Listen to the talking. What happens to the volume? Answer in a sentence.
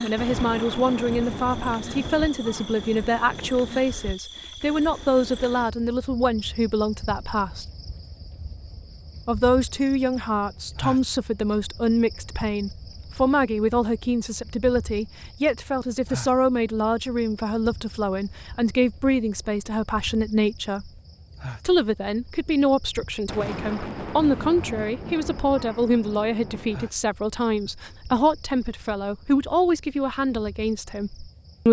The volume of the talking stays about the same.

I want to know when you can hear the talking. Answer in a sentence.
You can hear the talking from 0.0 to 7.7 s, from 9.2 to 20.9 s and from 21.6 to 31.6 s.